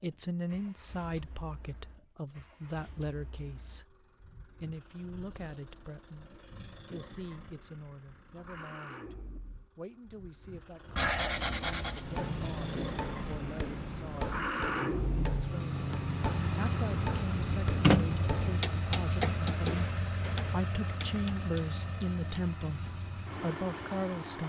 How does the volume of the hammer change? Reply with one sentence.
The loudness of the hammer goes down.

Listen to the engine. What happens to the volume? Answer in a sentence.
The volume of the engine goes up, then down.